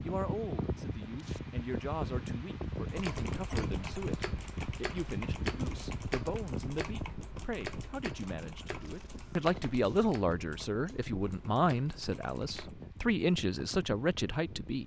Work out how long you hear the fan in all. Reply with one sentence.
You can hear the fan for 15 seconds altogether.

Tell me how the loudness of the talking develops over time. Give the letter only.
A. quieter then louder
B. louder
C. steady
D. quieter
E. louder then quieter
B.